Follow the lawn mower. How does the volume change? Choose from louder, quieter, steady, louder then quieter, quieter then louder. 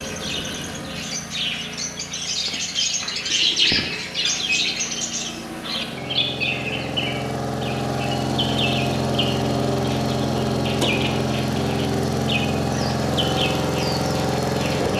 louder.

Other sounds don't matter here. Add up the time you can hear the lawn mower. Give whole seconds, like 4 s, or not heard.
15 s.